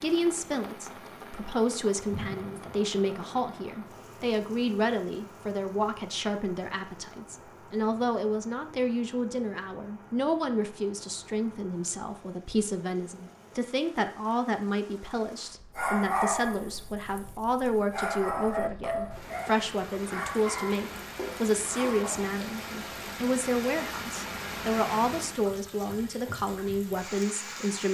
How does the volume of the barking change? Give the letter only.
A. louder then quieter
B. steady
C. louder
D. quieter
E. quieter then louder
D.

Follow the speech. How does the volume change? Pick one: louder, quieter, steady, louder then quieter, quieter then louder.
steady.